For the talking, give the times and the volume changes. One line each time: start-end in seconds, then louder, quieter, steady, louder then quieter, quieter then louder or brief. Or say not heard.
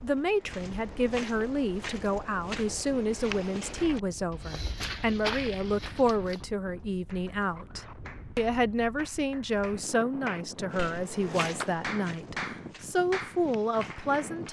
0.0-14.4 steady.